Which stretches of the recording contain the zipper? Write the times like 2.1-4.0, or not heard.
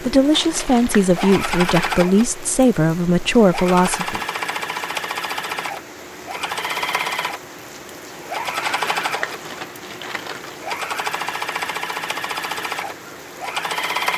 not heard.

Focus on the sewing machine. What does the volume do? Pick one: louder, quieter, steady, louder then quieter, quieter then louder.
steady.